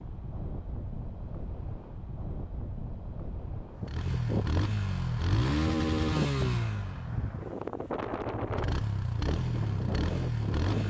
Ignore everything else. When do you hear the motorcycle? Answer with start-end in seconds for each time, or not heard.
3.9-10.8.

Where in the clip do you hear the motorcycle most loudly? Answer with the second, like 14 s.
6 s.